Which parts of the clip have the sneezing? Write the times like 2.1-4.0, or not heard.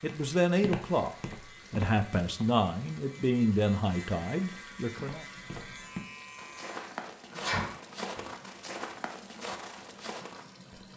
7.3-8.2.